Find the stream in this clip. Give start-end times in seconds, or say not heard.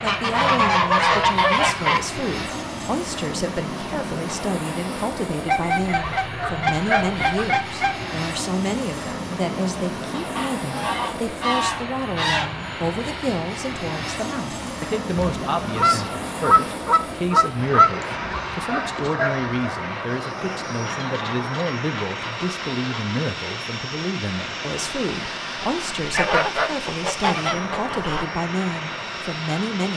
not heard.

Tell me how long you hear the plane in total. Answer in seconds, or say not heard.
30 s.